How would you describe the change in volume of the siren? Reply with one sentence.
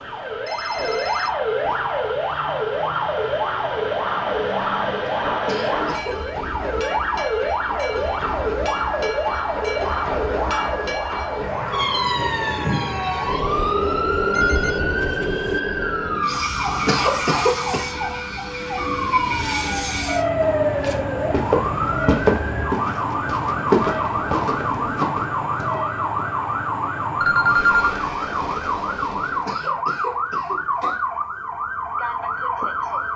The volume of the siren stays about the same.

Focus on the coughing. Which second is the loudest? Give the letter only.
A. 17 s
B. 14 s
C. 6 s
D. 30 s
A.